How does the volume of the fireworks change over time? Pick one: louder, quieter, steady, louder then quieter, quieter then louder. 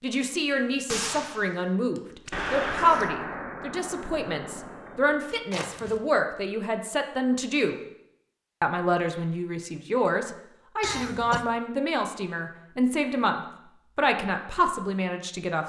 louder then quieter.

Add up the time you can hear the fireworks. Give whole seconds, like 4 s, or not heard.
5 s.